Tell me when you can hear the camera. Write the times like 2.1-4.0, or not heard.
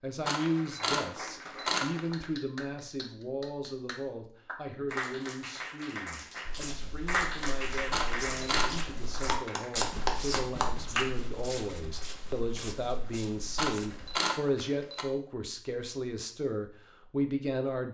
0.2-2.2, 7.9-8.8, 13.6-15.1.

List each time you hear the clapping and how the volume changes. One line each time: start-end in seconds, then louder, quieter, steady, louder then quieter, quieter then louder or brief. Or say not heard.
0.3-11.1 louder.